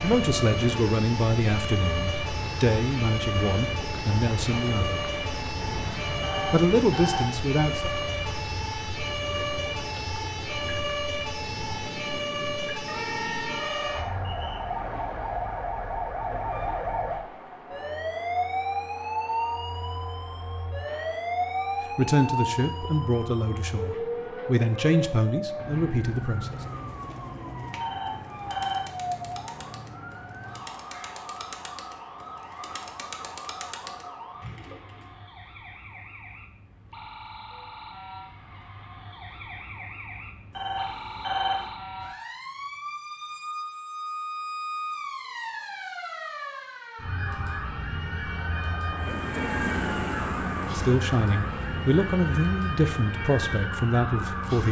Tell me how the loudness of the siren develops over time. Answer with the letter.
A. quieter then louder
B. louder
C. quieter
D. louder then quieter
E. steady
A.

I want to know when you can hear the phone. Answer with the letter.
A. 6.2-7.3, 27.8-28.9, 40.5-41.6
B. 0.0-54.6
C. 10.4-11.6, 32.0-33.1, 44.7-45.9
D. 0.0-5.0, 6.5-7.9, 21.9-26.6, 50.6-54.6
A.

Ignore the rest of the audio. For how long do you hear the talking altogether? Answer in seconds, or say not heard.
15 s.